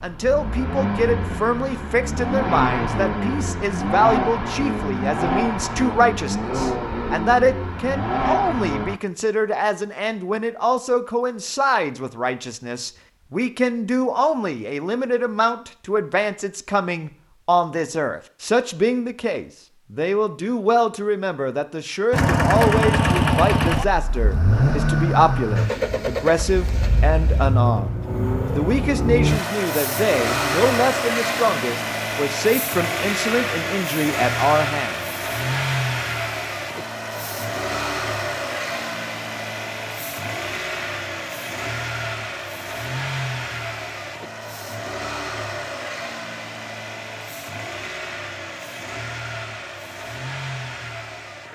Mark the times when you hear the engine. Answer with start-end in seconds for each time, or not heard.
0.0-9.0, 22.1-51.5.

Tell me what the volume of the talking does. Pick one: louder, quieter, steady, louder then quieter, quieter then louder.
steady.